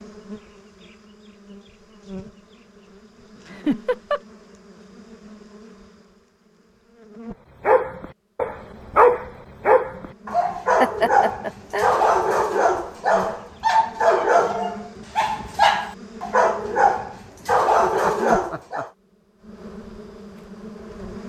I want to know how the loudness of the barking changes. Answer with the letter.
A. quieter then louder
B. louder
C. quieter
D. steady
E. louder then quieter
D.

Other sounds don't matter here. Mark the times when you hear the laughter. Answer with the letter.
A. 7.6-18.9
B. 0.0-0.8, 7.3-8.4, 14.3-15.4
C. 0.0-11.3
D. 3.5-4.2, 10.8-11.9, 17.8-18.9
D.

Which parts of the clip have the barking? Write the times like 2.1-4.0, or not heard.
7.6-18.9.